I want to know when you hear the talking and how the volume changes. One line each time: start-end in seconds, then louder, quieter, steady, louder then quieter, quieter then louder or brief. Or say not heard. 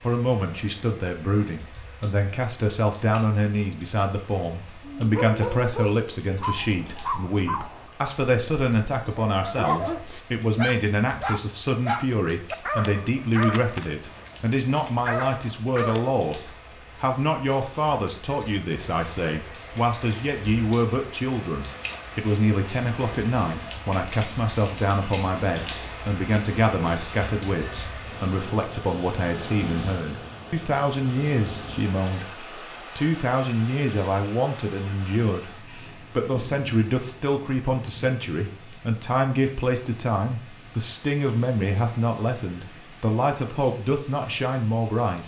0.0-45.2 steady.